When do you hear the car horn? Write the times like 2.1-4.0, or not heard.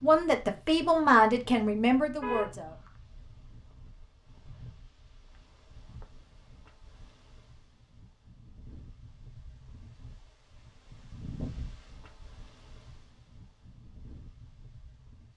2.2-2.9.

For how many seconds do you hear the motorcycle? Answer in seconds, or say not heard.
not heard.